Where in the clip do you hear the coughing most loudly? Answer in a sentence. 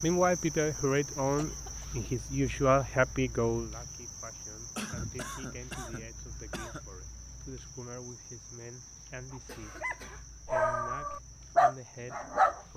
The volume of the coughing peaks at 5 seconds.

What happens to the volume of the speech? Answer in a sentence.
The loudness of the speech goes down.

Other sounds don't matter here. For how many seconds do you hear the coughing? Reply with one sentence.
You can hear the coughing for 4 seconds altogether.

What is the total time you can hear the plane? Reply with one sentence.
The plane can't be heard in this clip.